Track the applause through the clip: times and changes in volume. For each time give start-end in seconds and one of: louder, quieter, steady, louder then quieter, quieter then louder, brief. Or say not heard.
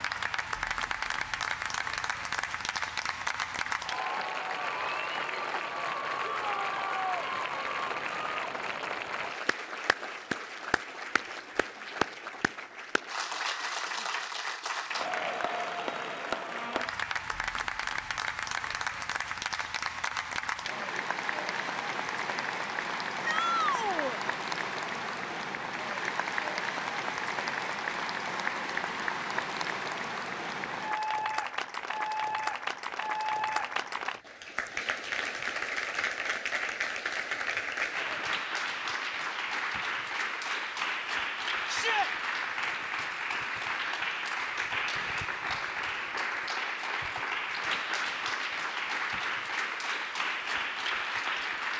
0.0-51.7 steady.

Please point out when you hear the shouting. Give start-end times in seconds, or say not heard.
6.3-7.3, 23.2-24.2, 41.6-42.1.